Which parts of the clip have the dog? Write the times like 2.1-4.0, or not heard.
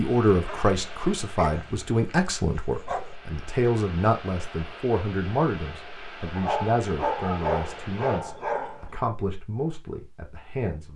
0.5-3.1, 6.3-8.9.